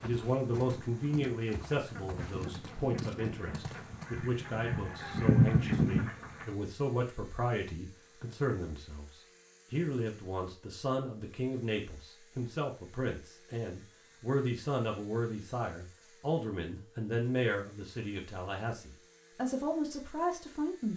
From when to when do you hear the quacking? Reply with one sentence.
You can hear the quacking from 0.6 to 6.5 s.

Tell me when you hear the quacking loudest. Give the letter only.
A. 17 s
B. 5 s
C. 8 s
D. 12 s
B.